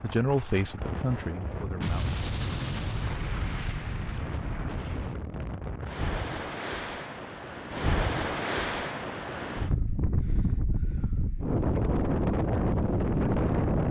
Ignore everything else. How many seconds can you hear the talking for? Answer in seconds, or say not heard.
2 s.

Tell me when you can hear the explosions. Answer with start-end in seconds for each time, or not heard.
1.8-5.2.